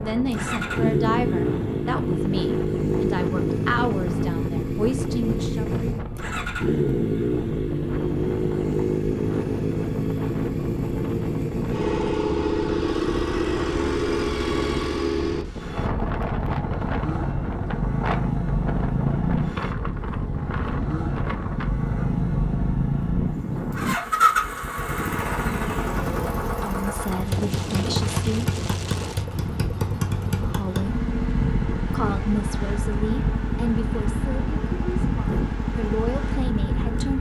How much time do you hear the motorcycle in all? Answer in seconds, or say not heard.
37 s.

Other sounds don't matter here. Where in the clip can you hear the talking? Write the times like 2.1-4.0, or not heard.
0.0-5.7, 26.5-28.5, 30.4-30.9, 31.8-37.1.